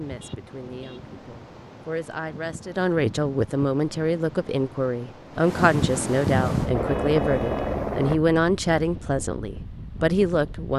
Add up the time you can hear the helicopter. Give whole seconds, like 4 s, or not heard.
2 s.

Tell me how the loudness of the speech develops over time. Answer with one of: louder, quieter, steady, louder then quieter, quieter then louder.
louder.